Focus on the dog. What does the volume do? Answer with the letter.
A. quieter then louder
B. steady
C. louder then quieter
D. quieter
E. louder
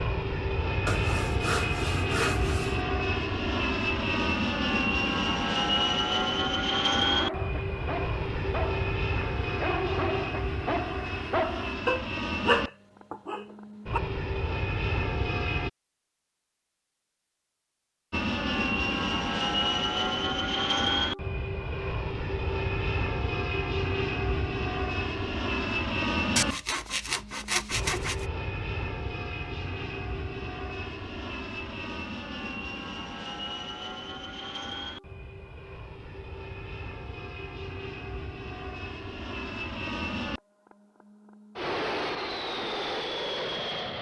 E.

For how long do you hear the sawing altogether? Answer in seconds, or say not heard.
4 s.